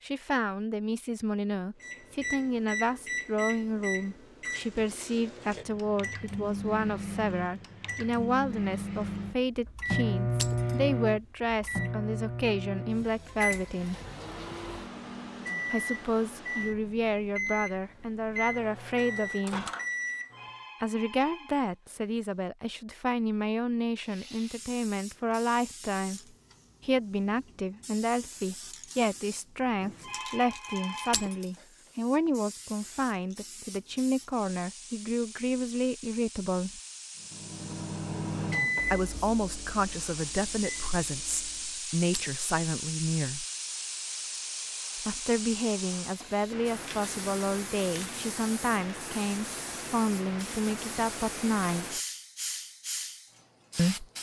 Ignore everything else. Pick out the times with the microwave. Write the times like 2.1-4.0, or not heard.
1.8-20.6, 37.2-41.9.